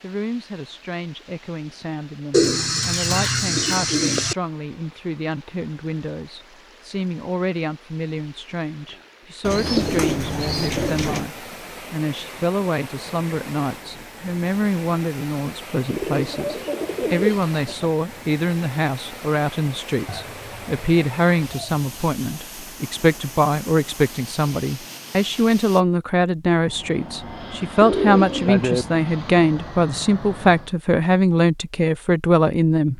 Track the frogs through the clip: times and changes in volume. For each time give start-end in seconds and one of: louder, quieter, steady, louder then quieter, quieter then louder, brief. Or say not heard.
not heard.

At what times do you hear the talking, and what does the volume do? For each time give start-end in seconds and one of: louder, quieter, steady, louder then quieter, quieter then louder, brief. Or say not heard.
0.0-32.9 louder.